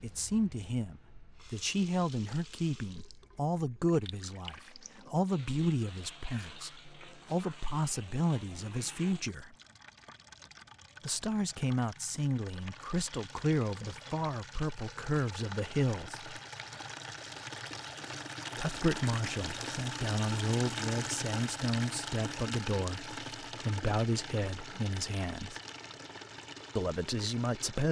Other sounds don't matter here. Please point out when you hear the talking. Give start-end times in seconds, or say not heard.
0.0-9.6, 11.1-16.2, 18.6-25.6, 26.8-27.8.